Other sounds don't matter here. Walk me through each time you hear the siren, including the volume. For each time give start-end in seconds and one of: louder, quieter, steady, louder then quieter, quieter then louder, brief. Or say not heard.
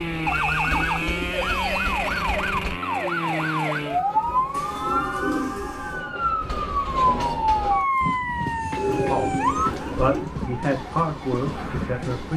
0.0-12.3 quieter.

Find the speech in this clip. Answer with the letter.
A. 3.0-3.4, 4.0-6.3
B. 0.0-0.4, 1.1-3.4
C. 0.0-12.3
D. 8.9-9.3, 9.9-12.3
D.